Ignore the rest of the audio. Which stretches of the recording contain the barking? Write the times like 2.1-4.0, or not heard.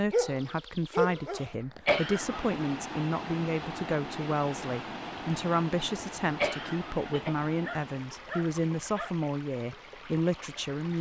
0.1-1.5, 7.0-9.2.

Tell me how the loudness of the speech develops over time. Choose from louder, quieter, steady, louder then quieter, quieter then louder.
steady.